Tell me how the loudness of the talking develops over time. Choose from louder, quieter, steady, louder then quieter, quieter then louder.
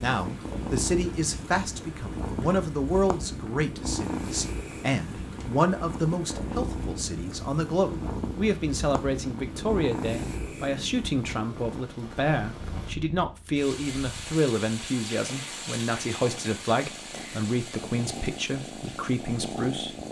steady.